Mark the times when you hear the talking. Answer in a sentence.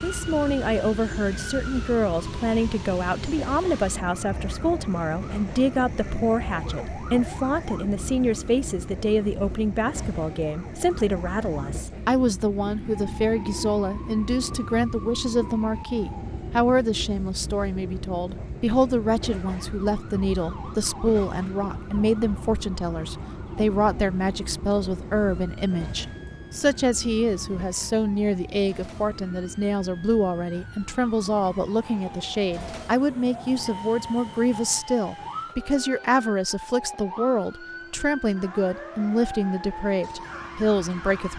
The talking can be heard from 0.0 to 41.3 s.